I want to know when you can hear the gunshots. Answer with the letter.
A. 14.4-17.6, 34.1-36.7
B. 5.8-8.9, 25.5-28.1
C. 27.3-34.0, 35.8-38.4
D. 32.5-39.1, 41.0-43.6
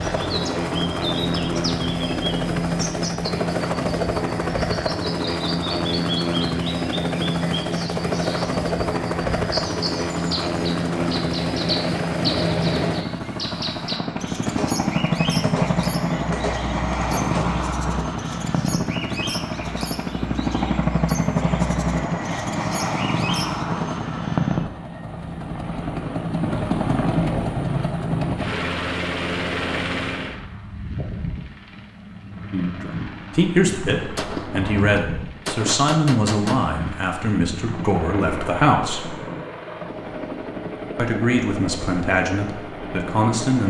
A.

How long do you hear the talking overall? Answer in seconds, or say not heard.
9 s.